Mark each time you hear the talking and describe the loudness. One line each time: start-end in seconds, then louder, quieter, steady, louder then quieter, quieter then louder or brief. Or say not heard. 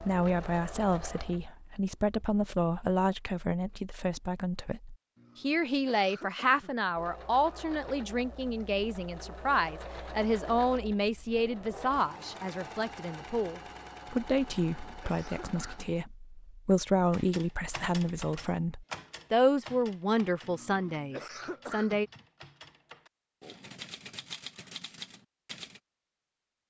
0.0-22.1 steady.